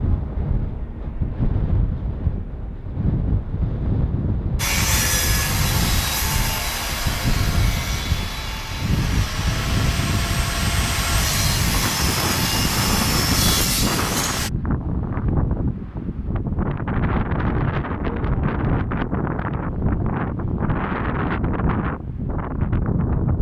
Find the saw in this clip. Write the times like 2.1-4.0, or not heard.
4.5-14.5.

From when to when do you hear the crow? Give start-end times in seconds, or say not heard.
not heard.